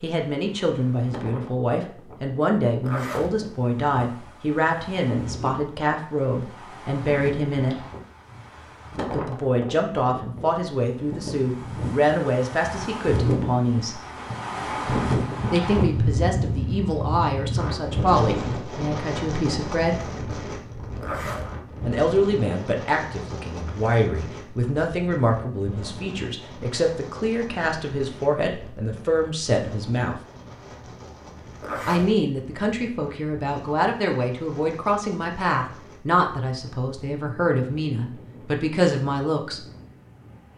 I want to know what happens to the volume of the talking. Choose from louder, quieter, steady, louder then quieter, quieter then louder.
steady.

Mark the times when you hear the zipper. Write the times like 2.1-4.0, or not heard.
2.8-3.4, 21.0-21.5, 31.6-32.1.